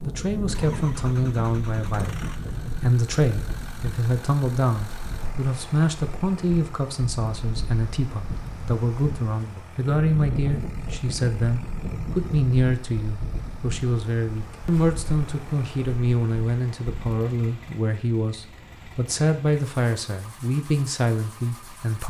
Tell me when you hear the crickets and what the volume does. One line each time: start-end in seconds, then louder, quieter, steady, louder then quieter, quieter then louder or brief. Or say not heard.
not heard.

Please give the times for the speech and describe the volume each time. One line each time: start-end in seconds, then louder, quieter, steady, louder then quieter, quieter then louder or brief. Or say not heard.
0.0-22.0 steady.